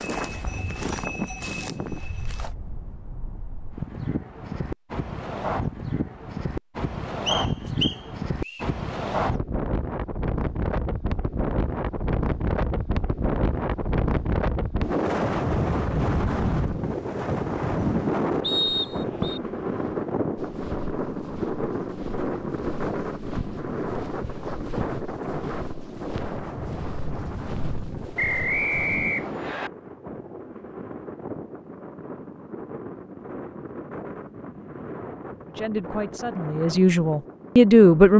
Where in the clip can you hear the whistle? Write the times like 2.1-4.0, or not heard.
7.2-8.7, 18.4-19.4, 28.1-29.7.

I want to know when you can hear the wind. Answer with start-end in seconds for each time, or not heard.
0.0-38.1.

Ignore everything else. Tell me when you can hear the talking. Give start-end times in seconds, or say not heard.
35.5-38.1.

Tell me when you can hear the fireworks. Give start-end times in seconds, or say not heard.
not heard.